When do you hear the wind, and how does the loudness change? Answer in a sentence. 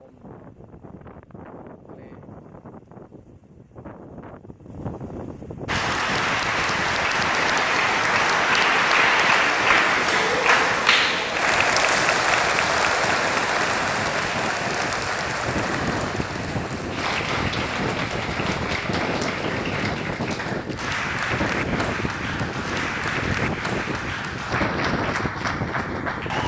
You can hear the wind from 0.0 to 26.4 s, getting louder.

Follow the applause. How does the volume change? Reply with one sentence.
The loudness of the applause goes down.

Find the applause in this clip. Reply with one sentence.
The applause can be heard from 5.7 to 26.4 s.